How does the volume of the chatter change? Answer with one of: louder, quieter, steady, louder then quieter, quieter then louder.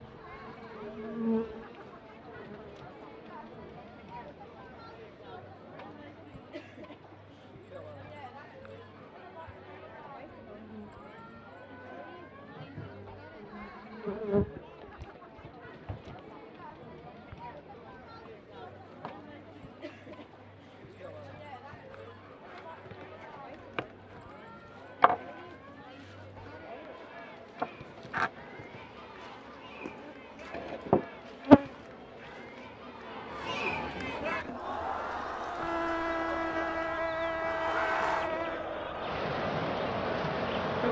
louder.